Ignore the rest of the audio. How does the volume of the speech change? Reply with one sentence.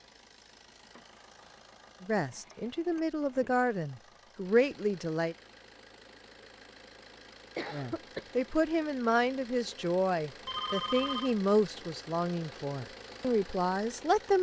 The loudness of the speech stays about the same.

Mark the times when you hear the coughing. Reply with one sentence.
The coughing can be heard from 7.5 to 8.4 s.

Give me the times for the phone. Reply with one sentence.
The phone can be heard from 10.4 to 11.3 s.